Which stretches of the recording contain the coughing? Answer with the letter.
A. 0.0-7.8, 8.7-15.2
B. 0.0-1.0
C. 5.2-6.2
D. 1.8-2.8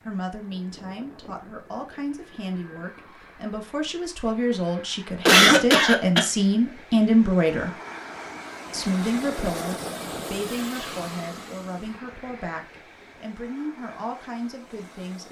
C.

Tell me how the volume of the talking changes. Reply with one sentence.
The volume of the talking goes up, then down.